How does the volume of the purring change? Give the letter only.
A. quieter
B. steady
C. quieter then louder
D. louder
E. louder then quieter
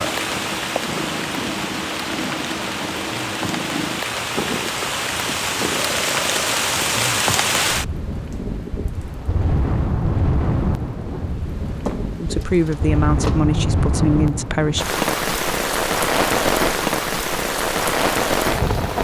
B.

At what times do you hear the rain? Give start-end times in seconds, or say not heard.
0.0-18.9.